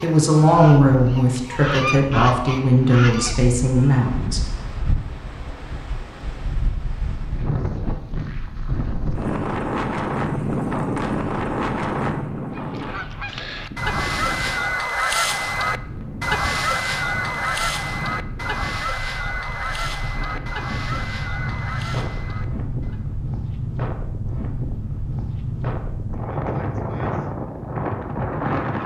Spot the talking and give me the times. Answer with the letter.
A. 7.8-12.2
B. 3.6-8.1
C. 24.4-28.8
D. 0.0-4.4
D.